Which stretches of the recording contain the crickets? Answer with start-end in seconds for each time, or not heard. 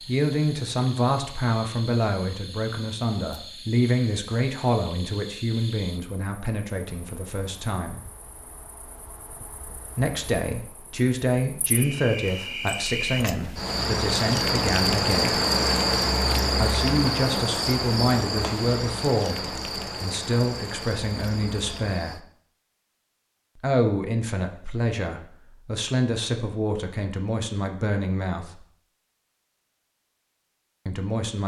0.0-22.2.